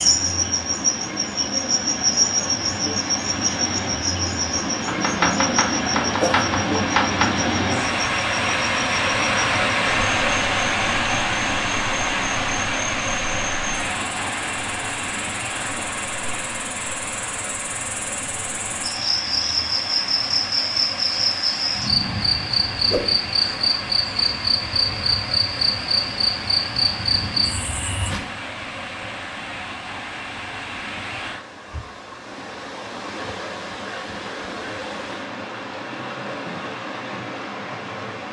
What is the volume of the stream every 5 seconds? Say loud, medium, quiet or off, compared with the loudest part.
medium, loud, loud, medium, medium, medium, medium, medium.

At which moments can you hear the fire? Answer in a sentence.
You can't hear the fire here.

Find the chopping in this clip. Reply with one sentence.
The chopping can be heard from 4.8 to 7.3 s.